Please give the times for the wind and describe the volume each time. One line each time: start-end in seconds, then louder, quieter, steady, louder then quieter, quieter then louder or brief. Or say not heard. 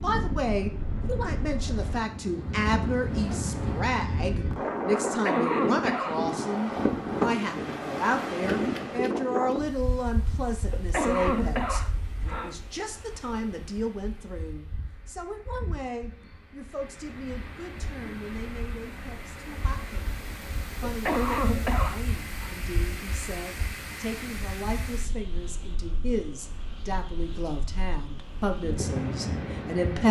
0.0-30.0 quieter then louder.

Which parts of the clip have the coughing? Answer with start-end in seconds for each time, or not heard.
5.0-6.2, 10.7-12.6, 20.9-22.5.